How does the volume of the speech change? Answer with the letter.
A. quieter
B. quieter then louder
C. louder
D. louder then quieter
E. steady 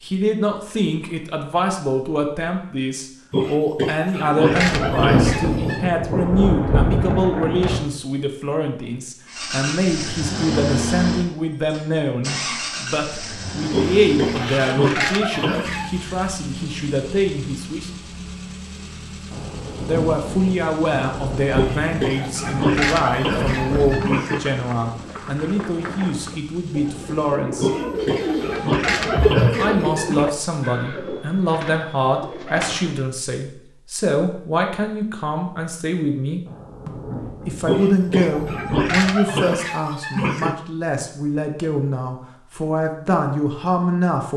E.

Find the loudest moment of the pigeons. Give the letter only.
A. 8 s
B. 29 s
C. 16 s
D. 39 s
B.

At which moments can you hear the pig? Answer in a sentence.
The pig can be heard from 3.3 to 5.9 s, from 13.7 to 15.9 s, from 21.6 to 24.4 s, from 27.6 to 30.3 s and from 37.6 to 40.5 s.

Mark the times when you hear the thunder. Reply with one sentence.
You can hear the thunder from 4.5 to 7.8 s, from 19.3 to 24.1 s and from 36.5 to 39.1 s.